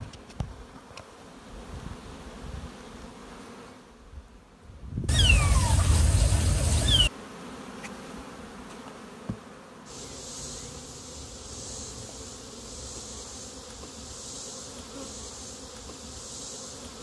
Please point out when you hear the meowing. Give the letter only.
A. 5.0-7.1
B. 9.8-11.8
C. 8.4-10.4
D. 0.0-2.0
A.